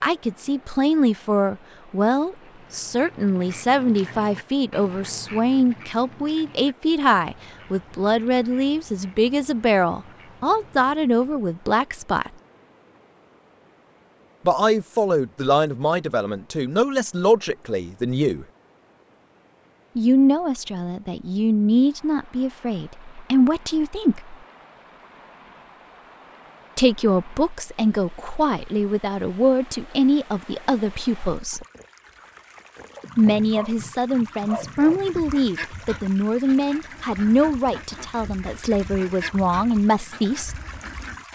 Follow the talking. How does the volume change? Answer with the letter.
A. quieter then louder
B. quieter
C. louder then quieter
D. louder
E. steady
E.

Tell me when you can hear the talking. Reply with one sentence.
The talking can be heard from 0.0 to 12.3 s, from 14.4 to 18.4 s, from 19.9 to 24.4 s, from 26.8 to 31.6 s and from 33.1 to 40.5 s.